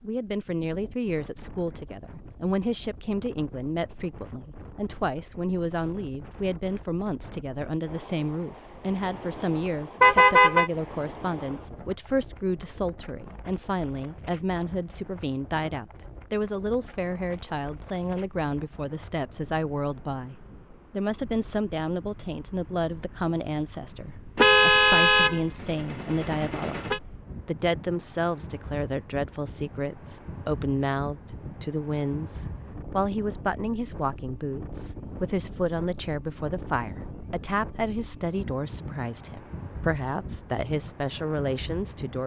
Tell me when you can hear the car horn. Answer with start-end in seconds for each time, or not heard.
10.0-10.7, 24.4-27.0.